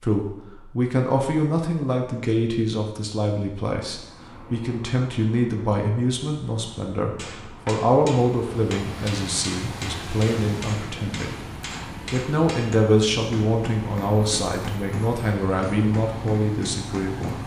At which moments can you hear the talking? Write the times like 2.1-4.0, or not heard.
0.0-11.4, 12.1-17.4.